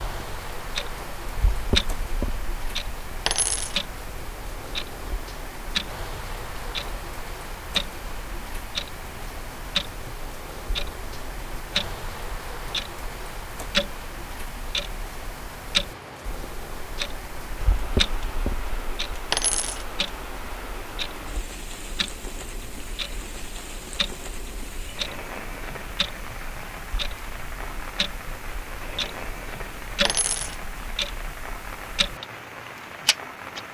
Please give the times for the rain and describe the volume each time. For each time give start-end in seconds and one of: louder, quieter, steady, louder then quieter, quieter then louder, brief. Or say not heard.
0.0-33.6 steady.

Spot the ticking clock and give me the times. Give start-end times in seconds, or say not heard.
0.0-33.6.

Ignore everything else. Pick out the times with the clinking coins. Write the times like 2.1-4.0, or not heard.
3.2-3.8, 19.3-19.9, 30.1-30.6.